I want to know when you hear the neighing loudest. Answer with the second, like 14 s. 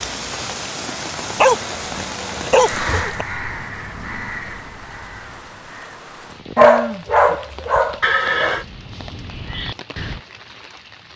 8 s.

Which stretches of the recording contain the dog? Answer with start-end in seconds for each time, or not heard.
1.4-3.2, 6.5-8.6.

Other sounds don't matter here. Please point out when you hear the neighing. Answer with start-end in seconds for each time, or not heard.
2.7-3.1, 8.0-8.7.